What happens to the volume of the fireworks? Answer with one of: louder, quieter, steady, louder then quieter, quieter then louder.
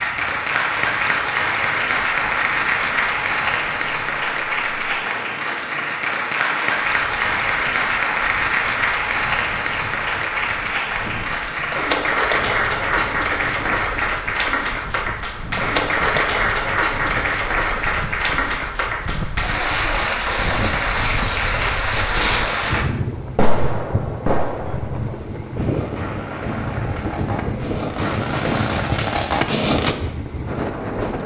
quieter then louder.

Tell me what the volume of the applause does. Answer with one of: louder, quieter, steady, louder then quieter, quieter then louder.
steady.